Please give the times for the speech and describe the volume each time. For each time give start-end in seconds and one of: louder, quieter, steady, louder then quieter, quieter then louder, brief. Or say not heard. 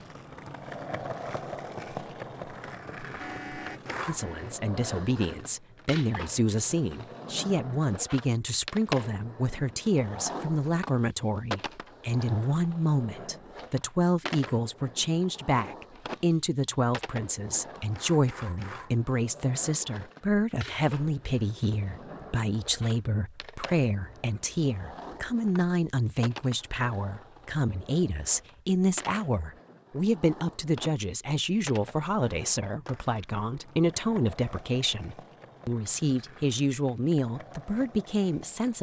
4.0-38.7 steady.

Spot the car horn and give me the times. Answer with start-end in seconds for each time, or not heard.
3.1-4.5.